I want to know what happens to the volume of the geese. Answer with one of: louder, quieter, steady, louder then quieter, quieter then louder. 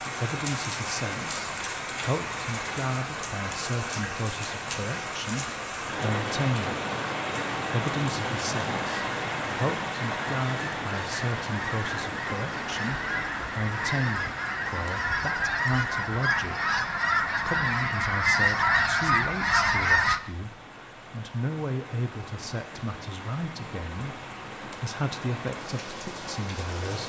louder.